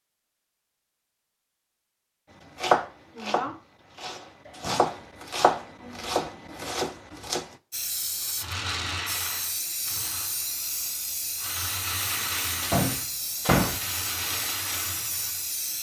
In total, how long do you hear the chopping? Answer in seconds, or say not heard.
5 s.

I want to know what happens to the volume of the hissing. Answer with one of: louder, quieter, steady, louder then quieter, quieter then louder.
steady.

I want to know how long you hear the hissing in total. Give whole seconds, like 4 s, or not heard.
8 s.